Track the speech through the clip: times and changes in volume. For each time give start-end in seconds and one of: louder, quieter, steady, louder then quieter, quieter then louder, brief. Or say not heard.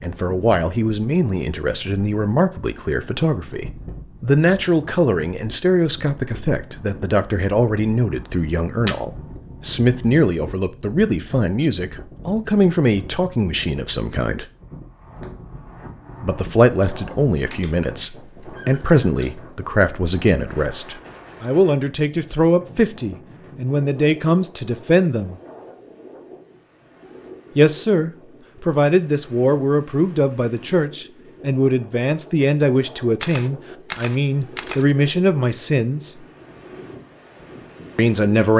0.0-14.4 steady
16.2-25.4 steady
27.6-36.2 steady
38.0-38.5 brief.